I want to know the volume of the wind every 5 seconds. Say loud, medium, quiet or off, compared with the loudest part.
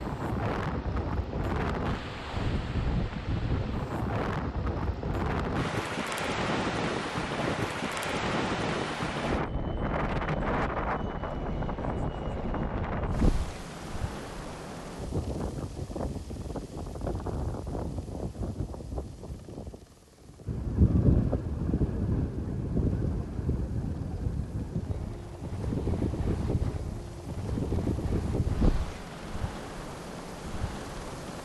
loud, loud, loud, medium, loud, loud, medium.